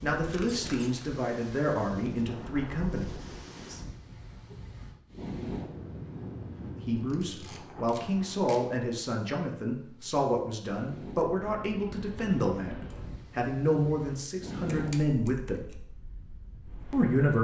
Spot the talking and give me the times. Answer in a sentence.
The talking can be heard from 0.0 to 3.0 s, from 6.8 to 15.7 s and from 16.9 to 17.3 s.